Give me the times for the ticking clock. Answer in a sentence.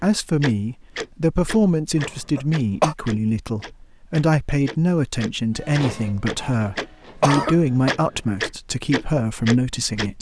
You can hear the ticking clock from 0.4 to 10.1 s.